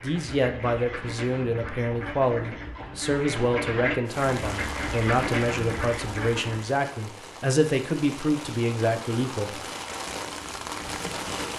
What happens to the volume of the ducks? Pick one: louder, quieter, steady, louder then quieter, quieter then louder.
louder.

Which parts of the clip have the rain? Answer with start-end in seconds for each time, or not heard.
4.0-11.5.